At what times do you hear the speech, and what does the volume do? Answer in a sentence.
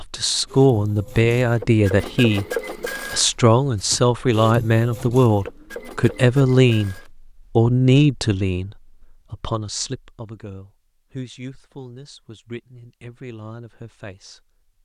You can hear the speech briefly from 0.0 to 2.5 s; and from 3.1 to 14.8 s, getting quieter.